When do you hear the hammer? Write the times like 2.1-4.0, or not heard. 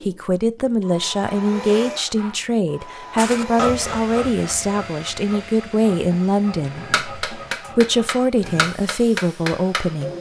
6.8-10.1.